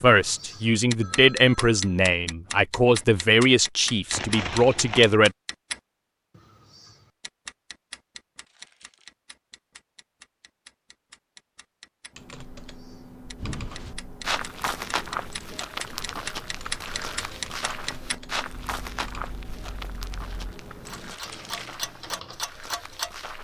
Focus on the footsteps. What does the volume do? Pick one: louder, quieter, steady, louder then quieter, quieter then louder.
quieter.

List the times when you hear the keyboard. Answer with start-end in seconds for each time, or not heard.
12.1-22.4.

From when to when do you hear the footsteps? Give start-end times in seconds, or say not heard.
13.3-23.4.